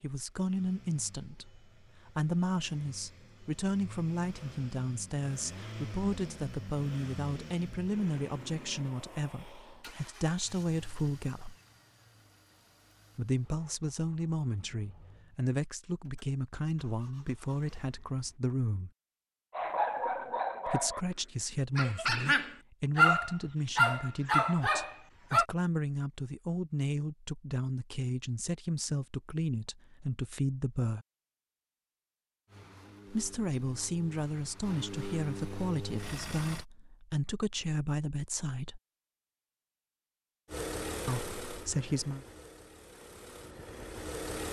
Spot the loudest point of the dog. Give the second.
23 s.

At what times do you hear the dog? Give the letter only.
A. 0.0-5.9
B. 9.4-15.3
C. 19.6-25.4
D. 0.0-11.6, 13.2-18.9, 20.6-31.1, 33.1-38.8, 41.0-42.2
C.